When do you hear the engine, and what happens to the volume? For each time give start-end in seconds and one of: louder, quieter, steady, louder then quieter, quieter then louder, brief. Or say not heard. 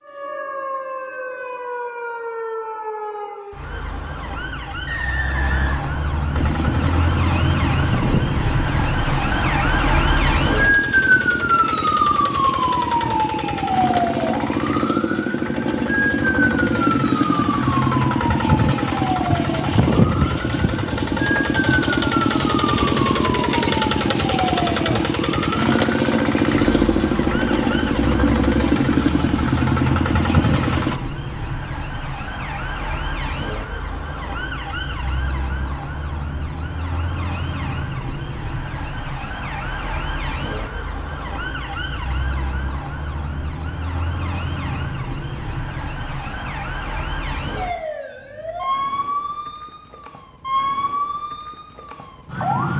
6.3-31.0 louder.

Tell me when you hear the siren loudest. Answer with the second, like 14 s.
11 s.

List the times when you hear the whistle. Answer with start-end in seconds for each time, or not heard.
4.8-5.8.